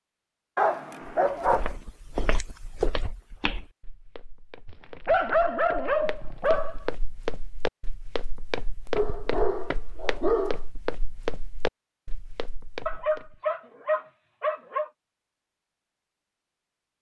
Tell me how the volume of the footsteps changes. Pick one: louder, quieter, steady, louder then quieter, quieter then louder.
quieter then louder.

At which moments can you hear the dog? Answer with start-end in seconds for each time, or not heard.
0.6-1.7, 4.7-6.8, 8.9-10.6, 12.8-14.9.